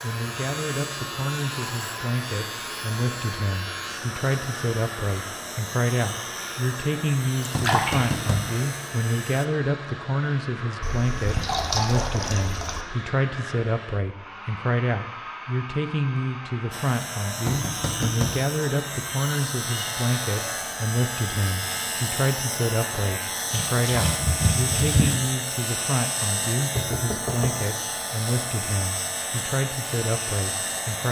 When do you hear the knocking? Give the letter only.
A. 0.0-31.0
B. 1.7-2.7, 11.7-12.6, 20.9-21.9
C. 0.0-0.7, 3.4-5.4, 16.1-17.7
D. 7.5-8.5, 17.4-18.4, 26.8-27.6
D.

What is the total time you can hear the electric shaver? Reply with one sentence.
You can hear the electric shaver for 24 seconds altogether.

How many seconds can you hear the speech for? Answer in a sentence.
The speech can be heard for 31 seconds in total.